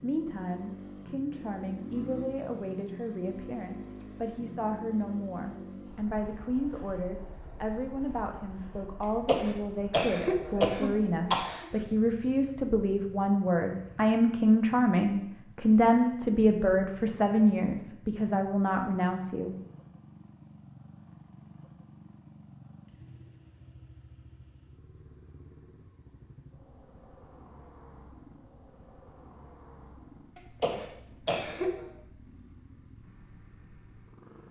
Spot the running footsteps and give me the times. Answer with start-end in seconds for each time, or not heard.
not heard.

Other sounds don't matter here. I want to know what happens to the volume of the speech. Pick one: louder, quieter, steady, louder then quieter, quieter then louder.
louder.